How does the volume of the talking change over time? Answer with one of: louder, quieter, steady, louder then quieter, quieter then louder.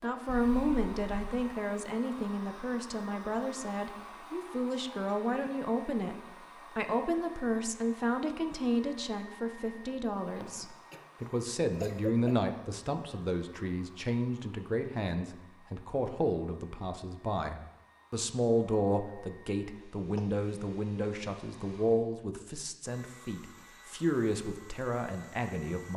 steady.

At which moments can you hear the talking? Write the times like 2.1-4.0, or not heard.
0.0-6.2, 6.8-25.9.